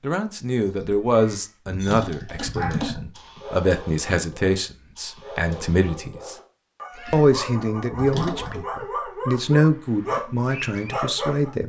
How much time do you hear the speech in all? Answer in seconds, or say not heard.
11 s.